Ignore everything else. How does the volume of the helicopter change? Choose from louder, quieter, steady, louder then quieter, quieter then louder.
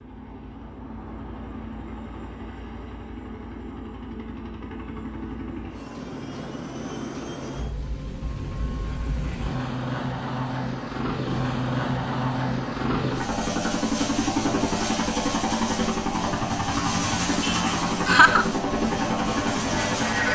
louder.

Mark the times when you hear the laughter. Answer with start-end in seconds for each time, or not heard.
17.4-18.4.